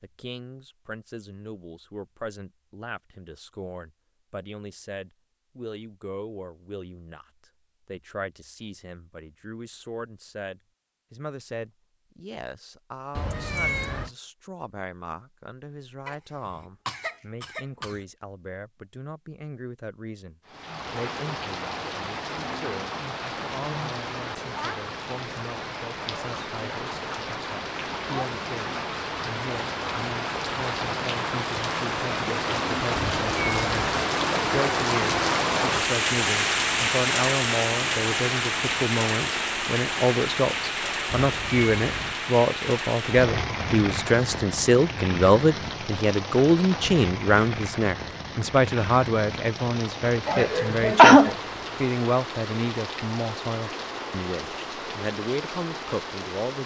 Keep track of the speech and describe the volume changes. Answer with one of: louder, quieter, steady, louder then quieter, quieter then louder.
louder.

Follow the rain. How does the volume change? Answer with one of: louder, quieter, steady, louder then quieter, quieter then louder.
louder then quieter.